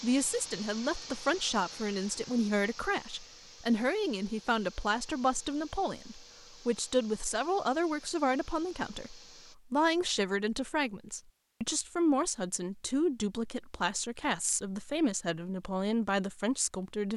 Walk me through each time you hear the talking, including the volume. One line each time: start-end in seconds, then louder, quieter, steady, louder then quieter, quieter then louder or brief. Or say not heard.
0.0-17.1 steady.